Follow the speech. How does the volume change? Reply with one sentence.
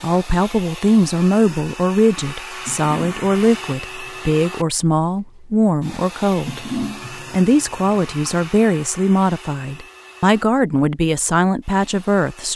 The volume of the speech stays about the same.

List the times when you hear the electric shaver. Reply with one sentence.
You can't hear the electric shaver here.